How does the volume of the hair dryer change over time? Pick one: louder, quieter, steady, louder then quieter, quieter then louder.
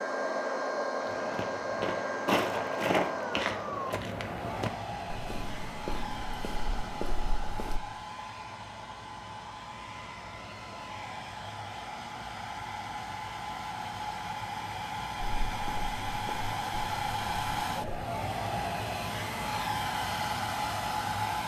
quieter then louder.